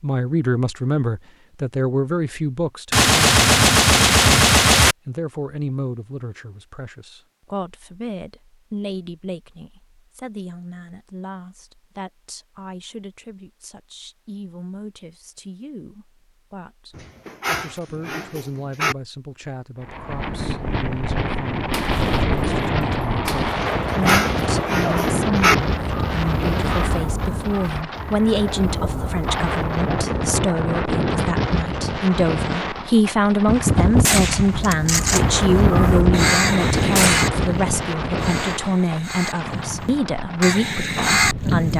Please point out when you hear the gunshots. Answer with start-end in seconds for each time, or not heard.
2.9-5.0, 21.7-25.2, 33.5-37.2.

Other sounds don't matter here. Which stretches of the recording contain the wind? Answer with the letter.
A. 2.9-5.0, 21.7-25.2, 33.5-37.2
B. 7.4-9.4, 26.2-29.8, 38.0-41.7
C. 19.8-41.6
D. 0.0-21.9
C.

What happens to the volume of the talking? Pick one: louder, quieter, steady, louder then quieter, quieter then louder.
quieter then louder.